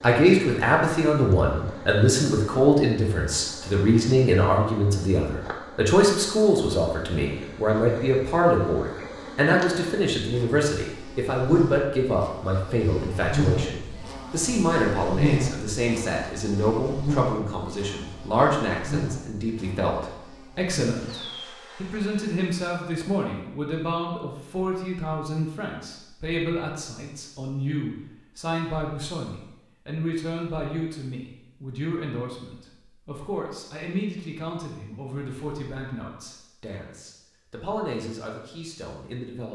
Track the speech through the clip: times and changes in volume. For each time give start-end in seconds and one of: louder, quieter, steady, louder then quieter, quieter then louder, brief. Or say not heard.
0.0-39.5 quieter.